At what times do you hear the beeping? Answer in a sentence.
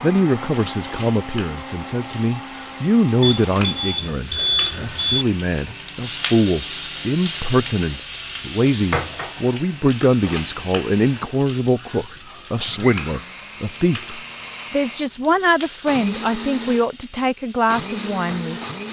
You can hear the beeping from 3.2 to 5.2 s.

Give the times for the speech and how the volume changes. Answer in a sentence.
You can hear the speech from 0.0 to 18.6 s, at a steady volume.